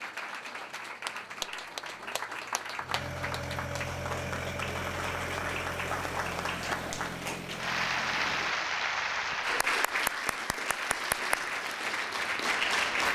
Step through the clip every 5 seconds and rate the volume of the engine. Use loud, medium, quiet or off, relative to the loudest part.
loud, loud, off.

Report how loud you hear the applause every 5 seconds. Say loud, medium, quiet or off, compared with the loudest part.
medium, loud, loud.